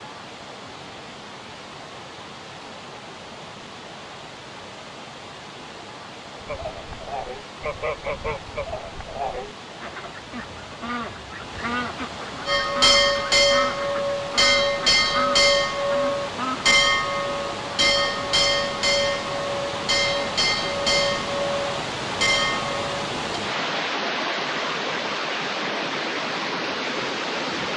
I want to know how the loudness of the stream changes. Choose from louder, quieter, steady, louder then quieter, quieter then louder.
louder.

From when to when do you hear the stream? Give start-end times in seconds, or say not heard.
0.0-27.7.